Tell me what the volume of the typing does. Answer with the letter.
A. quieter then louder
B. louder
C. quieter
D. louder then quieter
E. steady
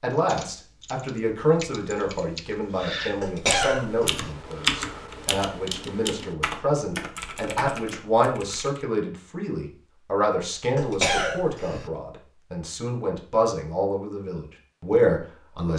D.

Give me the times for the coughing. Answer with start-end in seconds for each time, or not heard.
3.2-4.2, 10.8-11.9.